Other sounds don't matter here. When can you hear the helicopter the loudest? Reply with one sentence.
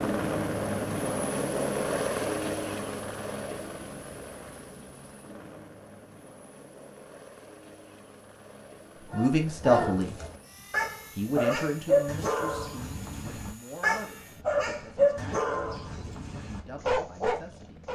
The volume of the helicopter peaks at 2 seconds.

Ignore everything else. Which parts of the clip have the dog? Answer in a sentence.
You can hear the dog from 9.1 to 17.8 s.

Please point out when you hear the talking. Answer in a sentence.
You can hear the talking from 9.1 to 10.2 s and from 11.2 to 17.8 s.